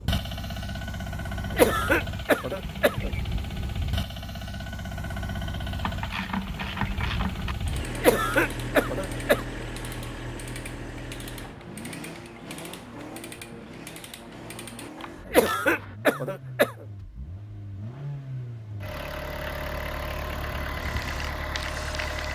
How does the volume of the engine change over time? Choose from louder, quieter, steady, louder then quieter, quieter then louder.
quieter then louder.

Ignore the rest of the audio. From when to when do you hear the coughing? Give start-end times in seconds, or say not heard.
1.5-3.1, 8.0-9.4, 15.2-16.7.